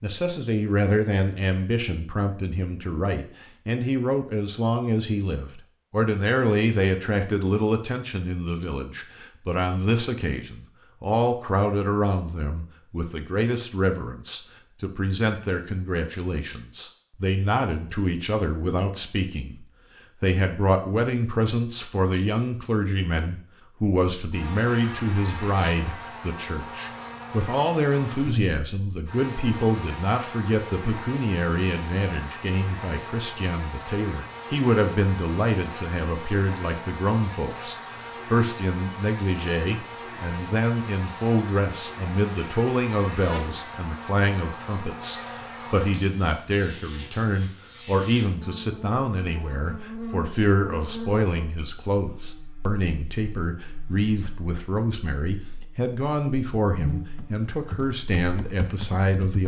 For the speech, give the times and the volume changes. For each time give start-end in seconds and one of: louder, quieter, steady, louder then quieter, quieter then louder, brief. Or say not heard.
0.0-59.4 steady.